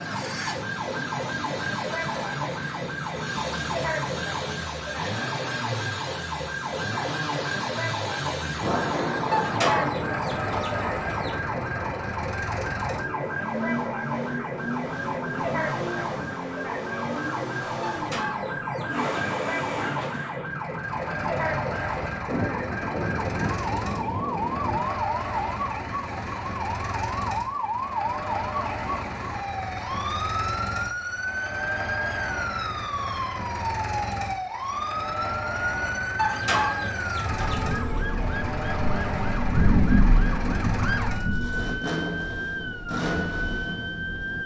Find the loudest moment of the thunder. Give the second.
40 s.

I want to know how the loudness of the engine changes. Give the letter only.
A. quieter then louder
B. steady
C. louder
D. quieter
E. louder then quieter
B.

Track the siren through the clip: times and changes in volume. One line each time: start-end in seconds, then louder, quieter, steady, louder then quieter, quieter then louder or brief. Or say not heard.
0.0-44.4 steady.